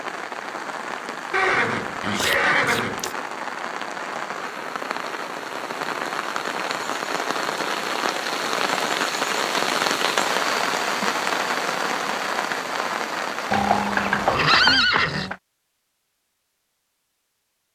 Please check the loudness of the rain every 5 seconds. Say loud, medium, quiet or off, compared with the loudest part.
medium, loud, loud, off.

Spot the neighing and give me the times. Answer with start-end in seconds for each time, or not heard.
1.3-3.1, 13.5-15.3.